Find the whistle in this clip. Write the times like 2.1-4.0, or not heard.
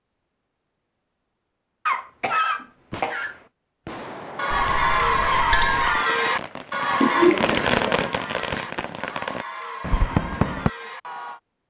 not heard.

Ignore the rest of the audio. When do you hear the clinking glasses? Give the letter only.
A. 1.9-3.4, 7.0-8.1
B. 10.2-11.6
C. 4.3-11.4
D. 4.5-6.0
D.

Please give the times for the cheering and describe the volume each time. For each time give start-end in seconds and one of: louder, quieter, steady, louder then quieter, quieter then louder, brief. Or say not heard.
4.3-11.4 quieter.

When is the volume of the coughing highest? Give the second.
7 s.